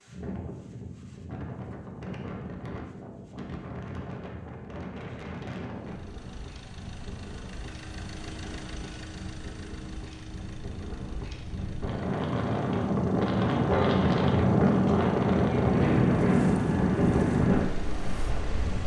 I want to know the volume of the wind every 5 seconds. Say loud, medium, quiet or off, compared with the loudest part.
quiet, quiet, loud, loud.